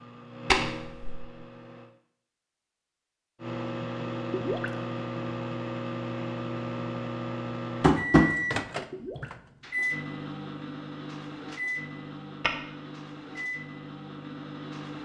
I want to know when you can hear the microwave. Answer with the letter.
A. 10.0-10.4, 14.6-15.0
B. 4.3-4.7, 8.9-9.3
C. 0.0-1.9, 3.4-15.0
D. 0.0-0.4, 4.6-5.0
C.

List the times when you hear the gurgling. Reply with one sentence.
The gurgling can be heard from 4.3 to 4.7 s and from 8.9 to 9.3 s.